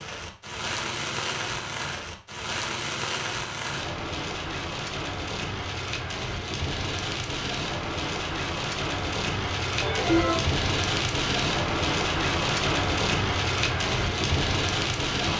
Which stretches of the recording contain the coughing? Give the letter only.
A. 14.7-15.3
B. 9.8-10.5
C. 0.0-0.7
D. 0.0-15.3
B.